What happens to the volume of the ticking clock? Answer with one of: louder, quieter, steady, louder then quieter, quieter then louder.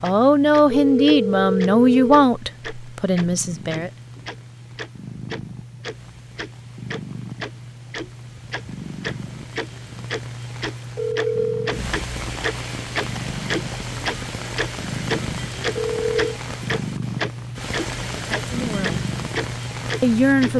louder.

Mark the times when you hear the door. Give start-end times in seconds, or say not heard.
not heard.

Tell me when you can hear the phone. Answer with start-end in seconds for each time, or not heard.
0.7-2.2, 10.9-11.8, 15.8-16.4.